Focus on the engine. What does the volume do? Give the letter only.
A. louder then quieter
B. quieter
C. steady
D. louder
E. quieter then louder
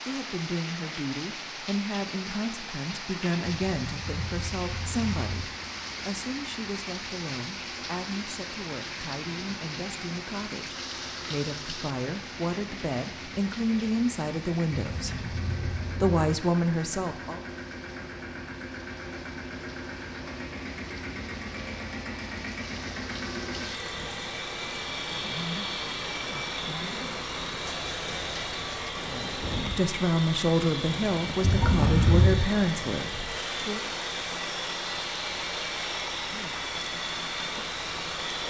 D.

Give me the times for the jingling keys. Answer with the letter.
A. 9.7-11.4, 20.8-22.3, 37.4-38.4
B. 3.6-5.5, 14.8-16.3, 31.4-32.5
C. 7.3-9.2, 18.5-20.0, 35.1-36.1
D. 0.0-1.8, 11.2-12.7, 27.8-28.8
B.